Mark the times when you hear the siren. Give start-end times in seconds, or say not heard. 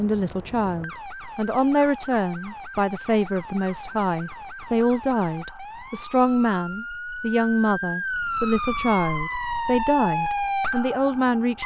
0.0-11.6.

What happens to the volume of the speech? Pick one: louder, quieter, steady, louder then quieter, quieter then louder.
steady.